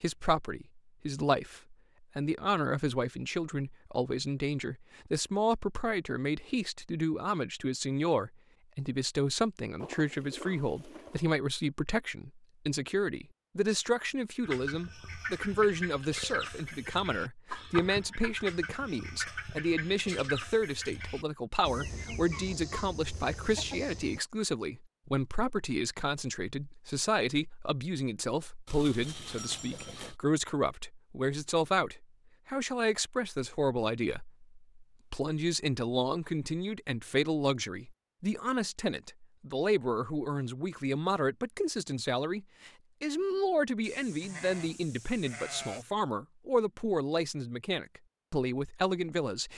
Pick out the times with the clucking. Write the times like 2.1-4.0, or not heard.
14.4-24.2.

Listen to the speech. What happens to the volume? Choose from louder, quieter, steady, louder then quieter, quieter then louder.
steady.